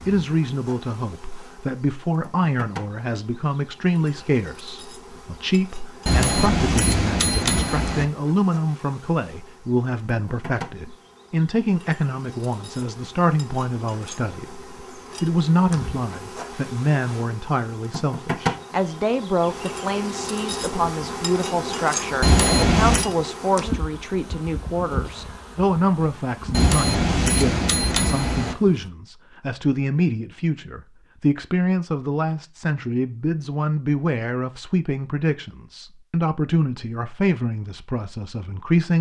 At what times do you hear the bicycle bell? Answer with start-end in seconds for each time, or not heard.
6.0-8.1, 22.2-23.1, 26.5-28.6.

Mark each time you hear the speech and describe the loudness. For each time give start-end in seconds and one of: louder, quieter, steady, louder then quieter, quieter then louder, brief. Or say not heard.
0.1-38.9 steady.